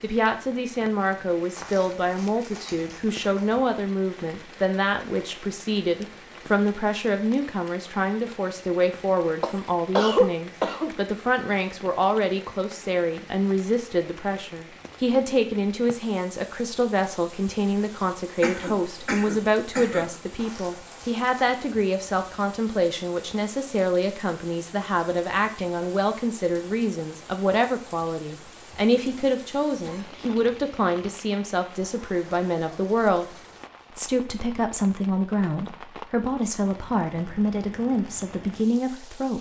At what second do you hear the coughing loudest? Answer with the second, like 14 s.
10 s.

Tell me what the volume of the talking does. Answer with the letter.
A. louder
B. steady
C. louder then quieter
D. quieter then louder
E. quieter
B.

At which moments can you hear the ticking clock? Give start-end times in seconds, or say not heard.
not heard.